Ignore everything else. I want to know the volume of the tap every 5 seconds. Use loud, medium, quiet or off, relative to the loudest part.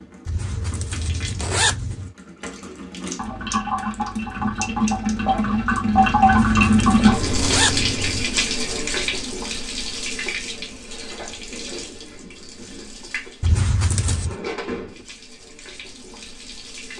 medium, loud, quiet, quiet.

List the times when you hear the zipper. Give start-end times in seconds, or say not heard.
0.2-2.1, 6.2-8.2, 13.4-14.4.